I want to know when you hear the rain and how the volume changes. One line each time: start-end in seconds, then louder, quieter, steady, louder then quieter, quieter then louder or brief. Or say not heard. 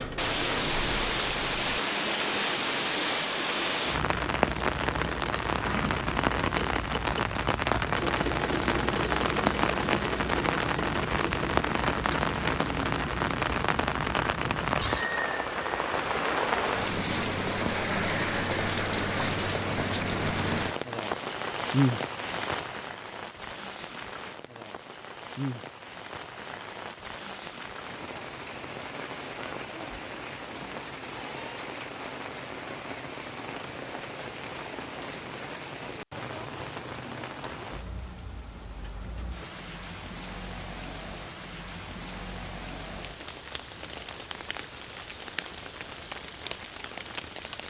0.0-47.6 quieter.